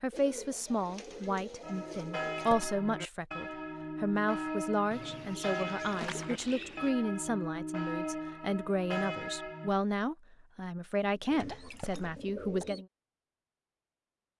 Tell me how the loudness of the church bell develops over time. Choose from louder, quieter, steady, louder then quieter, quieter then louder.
steady.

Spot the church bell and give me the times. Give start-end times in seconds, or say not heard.
1.6-9.7.